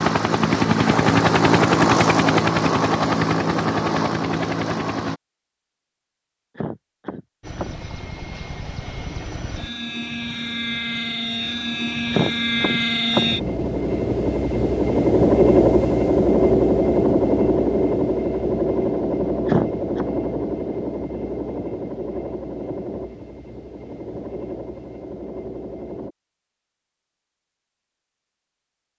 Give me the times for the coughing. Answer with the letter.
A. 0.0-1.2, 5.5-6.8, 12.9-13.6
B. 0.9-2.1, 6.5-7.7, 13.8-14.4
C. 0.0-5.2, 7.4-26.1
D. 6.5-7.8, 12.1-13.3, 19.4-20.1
D.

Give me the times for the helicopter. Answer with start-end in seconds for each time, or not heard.
0.0-5.2, 7.4-26.1.